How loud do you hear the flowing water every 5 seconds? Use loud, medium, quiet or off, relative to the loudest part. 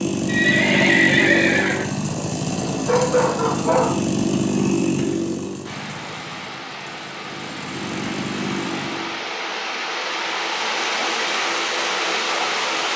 off, medium, loud.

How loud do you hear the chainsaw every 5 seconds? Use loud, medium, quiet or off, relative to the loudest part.
loud, medium, off.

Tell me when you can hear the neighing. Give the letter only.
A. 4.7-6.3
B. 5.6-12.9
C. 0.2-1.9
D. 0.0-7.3
C.